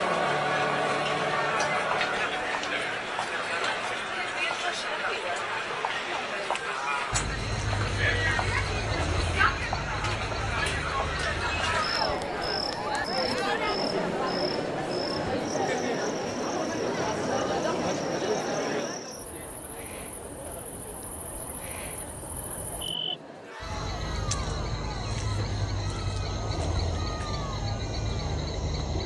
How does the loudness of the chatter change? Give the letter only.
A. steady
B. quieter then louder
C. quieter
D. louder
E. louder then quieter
C.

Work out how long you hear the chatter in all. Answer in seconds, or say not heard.
29 s.